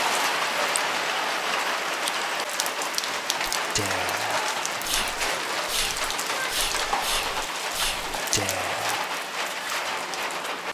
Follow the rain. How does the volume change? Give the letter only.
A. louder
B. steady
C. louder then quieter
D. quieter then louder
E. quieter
B.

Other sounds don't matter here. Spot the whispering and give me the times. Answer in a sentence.
You can hear the whispering from 3.5 to 9.1 s.